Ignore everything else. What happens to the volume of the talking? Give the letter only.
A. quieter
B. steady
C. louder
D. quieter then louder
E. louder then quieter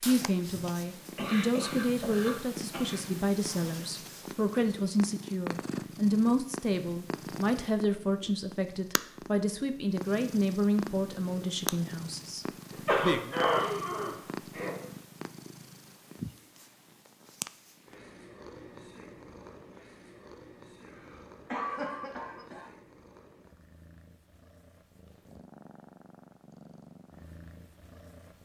B.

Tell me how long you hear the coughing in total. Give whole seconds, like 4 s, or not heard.
6 s.